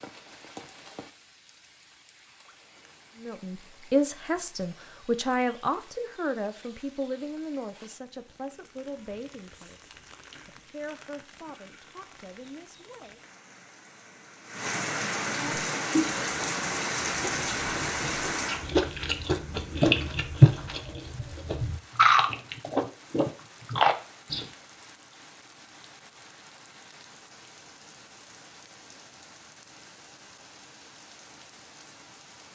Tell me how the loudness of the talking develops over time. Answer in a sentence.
The volume of the talking goes down.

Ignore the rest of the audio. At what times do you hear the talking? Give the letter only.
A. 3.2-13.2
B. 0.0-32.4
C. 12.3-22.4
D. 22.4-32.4
A.